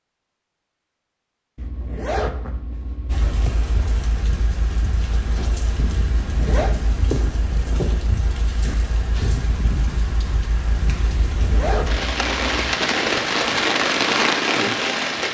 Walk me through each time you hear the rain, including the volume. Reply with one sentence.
The rain can be heard from 3.0 to 15.2 s, getting louder.